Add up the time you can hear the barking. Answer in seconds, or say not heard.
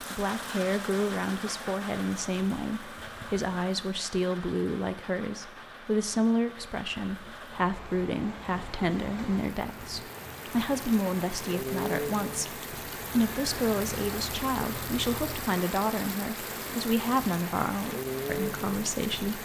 not heard.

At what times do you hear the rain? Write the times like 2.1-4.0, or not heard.
0.0-19.4.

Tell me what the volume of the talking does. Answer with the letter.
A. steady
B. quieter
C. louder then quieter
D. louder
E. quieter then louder
A.